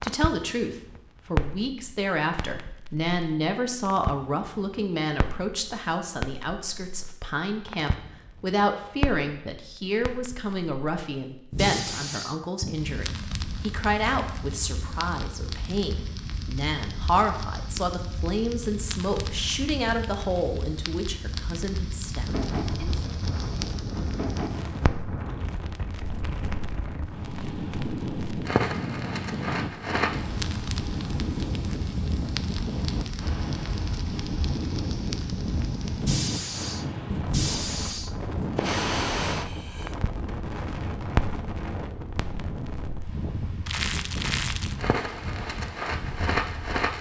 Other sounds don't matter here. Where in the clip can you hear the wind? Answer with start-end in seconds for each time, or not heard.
22.2-46.9.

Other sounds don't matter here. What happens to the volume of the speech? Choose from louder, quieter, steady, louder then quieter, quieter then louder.
steady.